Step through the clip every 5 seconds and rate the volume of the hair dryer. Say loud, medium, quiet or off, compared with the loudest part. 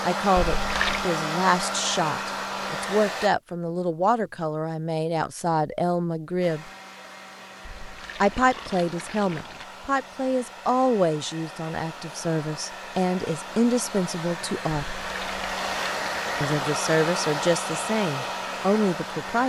loud, quiet, medium, loud.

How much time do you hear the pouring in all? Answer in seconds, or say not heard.
4 s.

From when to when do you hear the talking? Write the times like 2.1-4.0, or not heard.
0.0-6.7, 8.2-14.8, 16.4-19.4.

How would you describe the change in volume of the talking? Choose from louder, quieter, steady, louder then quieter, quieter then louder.
steady.